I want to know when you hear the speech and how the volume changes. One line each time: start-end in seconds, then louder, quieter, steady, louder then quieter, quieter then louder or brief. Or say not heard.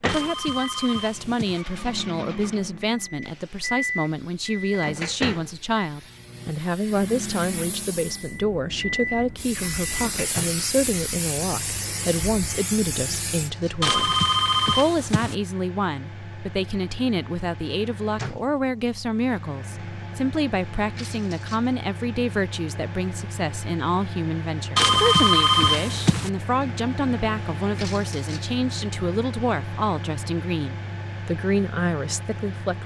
0.0-32.8 steady.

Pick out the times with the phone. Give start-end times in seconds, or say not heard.
0.1-1.6, 13.8-15.3, 24.8-26.3.